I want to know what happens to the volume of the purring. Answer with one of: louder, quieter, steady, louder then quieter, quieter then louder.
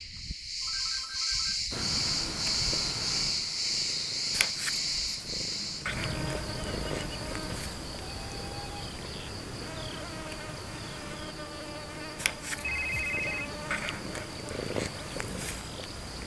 quieter then louder.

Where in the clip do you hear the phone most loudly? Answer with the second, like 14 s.
13 s.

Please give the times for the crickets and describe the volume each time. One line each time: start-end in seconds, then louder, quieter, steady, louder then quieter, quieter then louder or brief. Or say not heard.
0.0-16.2 quieter.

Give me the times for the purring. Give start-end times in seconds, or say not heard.
1.7-16.2.